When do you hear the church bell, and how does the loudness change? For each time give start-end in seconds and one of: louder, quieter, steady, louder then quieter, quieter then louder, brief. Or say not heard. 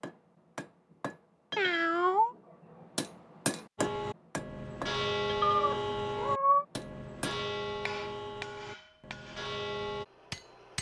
3.8-10.1 quieter.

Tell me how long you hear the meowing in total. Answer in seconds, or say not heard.
2 s.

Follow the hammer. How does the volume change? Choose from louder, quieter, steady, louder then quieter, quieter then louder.
louder then quieter.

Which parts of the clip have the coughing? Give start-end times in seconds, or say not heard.
not heard.